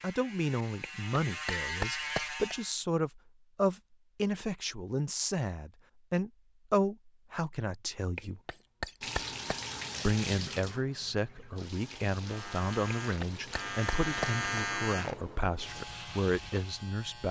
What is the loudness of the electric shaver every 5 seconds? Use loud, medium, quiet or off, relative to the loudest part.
loud, off, loud, medium.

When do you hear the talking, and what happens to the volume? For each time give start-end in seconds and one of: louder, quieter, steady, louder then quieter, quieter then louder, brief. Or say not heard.
0.0-8.4 steady
10.1-17.2 steady.